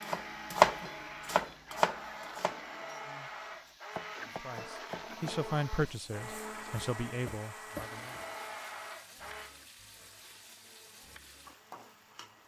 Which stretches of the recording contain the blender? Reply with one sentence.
The blender can be heard from 0.0 to 12.4 s.